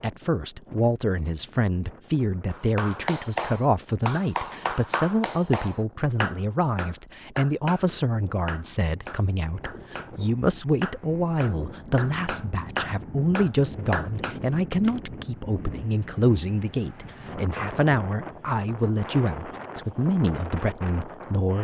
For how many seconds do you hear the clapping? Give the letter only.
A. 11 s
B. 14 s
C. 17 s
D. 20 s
A.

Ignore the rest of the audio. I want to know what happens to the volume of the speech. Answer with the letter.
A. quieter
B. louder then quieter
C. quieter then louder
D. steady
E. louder
D.